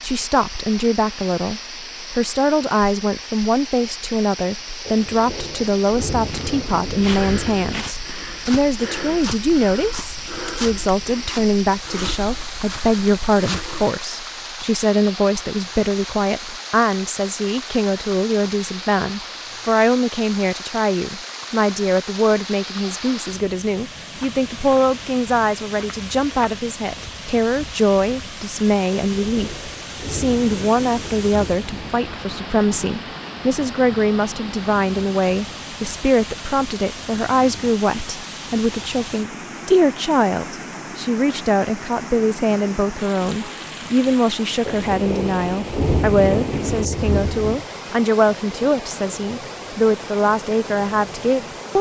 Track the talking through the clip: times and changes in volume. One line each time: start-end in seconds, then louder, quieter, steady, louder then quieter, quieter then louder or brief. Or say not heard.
0.0-51.7 steady.